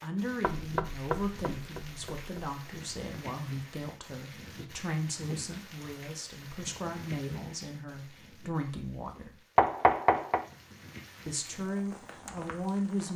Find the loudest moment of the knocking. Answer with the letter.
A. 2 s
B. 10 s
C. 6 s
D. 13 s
B.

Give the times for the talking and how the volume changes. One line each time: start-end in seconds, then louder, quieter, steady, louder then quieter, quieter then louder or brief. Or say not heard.
0.0-9.4 steady
11.2-13.1 brief.